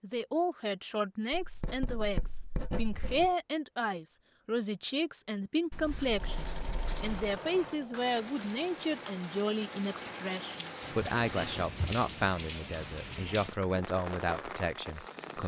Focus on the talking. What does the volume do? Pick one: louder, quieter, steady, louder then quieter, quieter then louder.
steady.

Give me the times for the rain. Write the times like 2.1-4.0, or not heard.
7.0-15.4.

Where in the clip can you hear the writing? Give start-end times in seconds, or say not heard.
1.3-3.4, 5.7-7.4, 10.8-12.1.